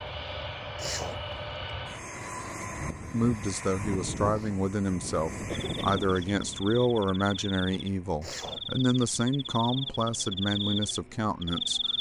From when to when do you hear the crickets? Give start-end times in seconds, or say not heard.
5.5-11.9.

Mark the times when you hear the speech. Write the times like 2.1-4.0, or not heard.
3.1-11.9.